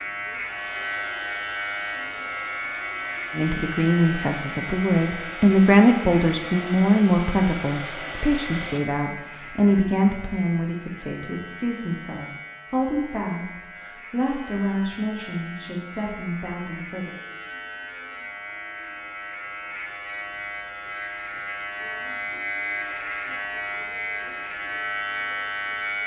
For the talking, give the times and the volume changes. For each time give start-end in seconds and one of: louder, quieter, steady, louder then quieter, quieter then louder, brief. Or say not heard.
3.4-17.1 quieter.